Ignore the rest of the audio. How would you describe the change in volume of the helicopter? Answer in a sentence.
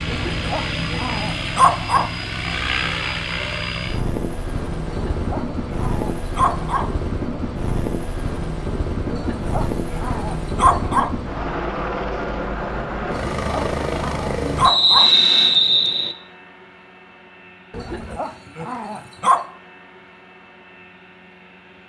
The loudness of the helicopter goes down.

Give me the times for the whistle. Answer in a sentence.
You can hear the whistle from 14.6 to 16.1 s.